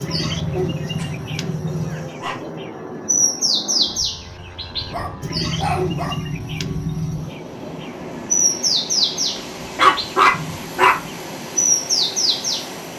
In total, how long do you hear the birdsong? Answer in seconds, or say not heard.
13 s.